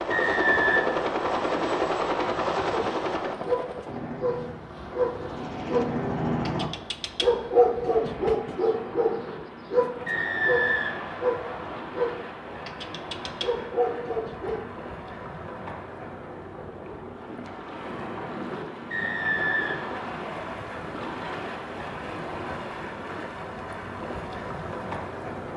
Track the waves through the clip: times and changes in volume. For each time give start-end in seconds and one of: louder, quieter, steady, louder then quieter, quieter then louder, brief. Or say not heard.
0.0-25.5 louder.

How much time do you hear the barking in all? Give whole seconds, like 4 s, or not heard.
12 s.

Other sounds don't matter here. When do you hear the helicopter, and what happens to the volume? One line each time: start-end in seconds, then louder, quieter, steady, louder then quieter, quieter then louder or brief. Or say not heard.
0.0-6.7 quieter then louder.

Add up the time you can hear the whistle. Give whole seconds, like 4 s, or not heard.
4 s.